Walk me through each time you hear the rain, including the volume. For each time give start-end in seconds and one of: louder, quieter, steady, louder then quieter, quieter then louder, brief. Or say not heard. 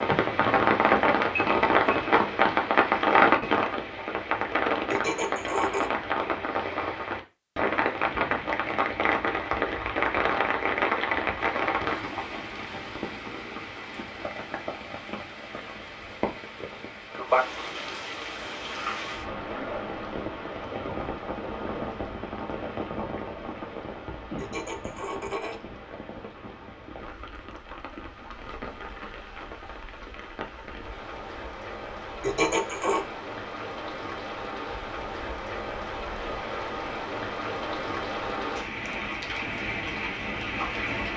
0.0-41.1 quieter then louder.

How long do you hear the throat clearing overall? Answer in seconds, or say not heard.
3 s.